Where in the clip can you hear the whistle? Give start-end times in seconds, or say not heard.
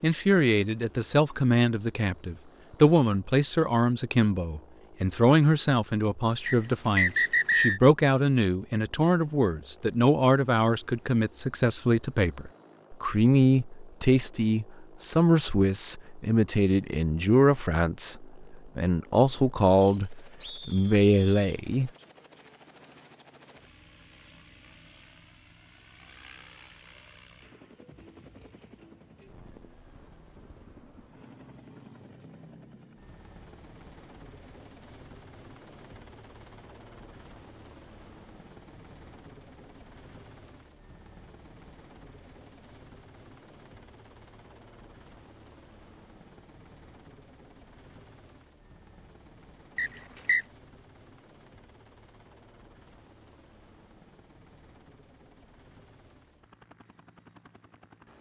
6.5-7.8, 19.8-21.6, 49.8-50.5.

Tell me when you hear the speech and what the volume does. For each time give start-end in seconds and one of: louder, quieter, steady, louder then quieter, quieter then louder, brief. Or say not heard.
0.0-21.9 steady.